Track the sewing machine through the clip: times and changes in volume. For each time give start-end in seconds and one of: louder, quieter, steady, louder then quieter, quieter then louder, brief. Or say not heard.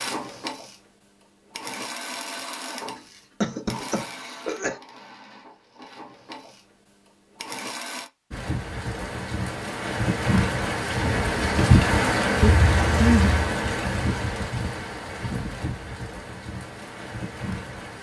0.0-8.1 quieter then louder.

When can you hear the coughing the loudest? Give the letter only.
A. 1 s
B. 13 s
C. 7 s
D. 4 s
B.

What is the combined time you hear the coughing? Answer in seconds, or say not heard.
3 s.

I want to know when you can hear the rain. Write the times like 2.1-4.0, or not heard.
8.3-17.9.